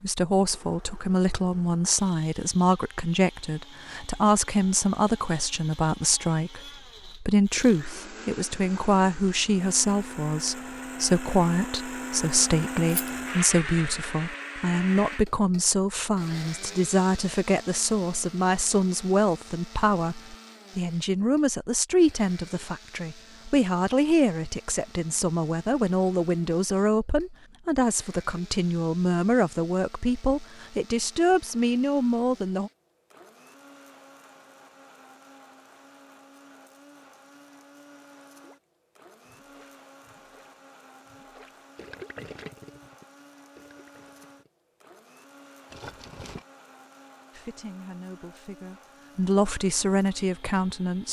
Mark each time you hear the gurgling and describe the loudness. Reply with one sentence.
You can hear the gurgling from 38.4 to 44.5 s, getting louder then quieter.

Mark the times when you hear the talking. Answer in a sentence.
You can hear the talking from 0.0 to 32.7 s and from 47.3 to 51.0 s.